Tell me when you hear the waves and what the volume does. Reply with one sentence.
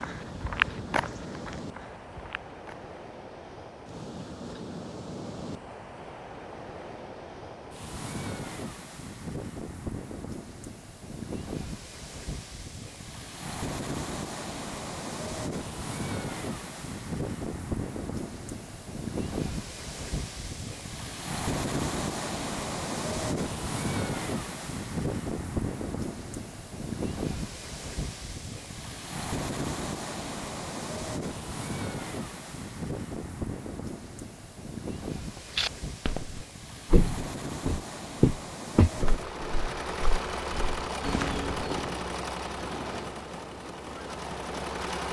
You can hear the waves from 0.0 to 45.0 s, getting louder then quieter.